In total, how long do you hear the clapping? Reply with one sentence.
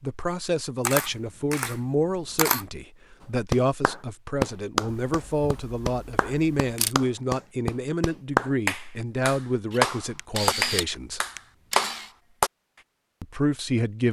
You can hear the clapping for 9 seconds altogether.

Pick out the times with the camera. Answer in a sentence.
The camera can be heard from 0.8 to 2.6 s, from 4.8 to 7.0 s and from 9.7 to 12.1 s.